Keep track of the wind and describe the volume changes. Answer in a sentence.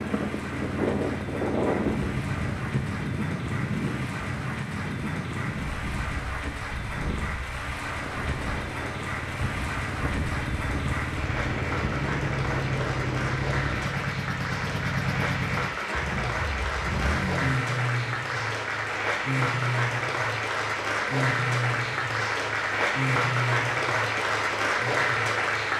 The loudness of the wind goes down.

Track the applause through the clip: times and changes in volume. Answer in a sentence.
You can hear the applause from 0.0 to 25.7 s, getting louder.